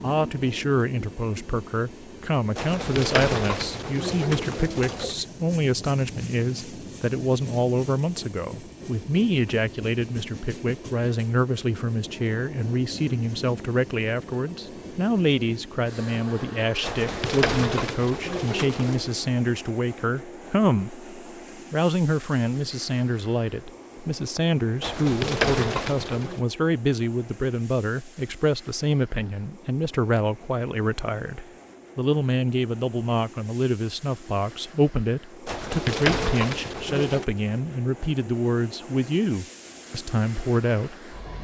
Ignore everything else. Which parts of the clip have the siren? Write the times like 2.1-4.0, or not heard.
not heard.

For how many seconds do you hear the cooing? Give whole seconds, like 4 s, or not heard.
8 s.